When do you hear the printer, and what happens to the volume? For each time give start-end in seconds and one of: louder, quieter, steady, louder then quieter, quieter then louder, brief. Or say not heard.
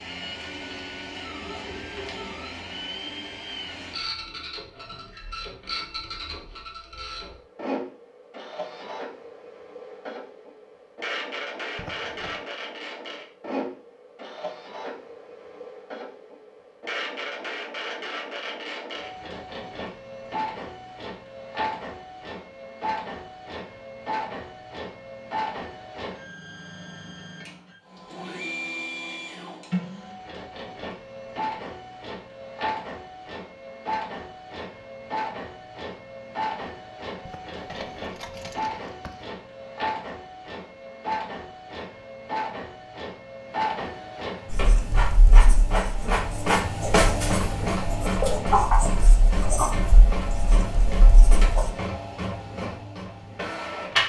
0.0-54.0 louder.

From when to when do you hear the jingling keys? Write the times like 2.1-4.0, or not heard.
11.8-12.4, 37.2-39.2.